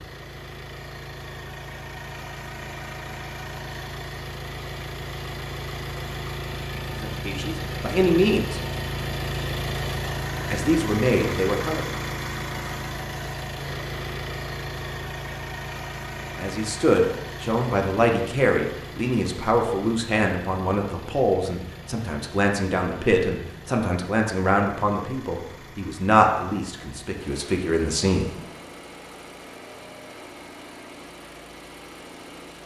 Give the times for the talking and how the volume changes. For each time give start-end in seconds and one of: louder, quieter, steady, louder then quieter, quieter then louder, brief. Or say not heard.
6.9-8.6 brief
10.5-11.8 brief
16.4-28.3 steady.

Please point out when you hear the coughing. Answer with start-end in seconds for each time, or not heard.
not heard.